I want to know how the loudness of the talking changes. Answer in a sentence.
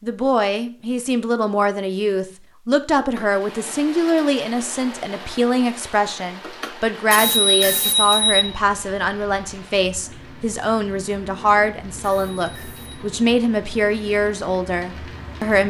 The loudness of the talking stays about the same.